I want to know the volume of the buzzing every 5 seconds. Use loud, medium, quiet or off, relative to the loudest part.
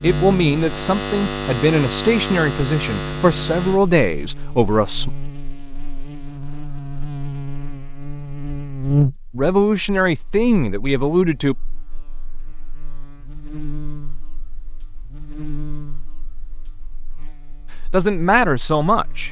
loud, loud, quiet, quiet.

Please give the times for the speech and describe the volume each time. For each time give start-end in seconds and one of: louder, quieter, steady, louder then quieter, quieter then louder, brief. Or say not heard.
0.0-5.1 steady
9.3-11.6 brief
17.9-19.2 brief.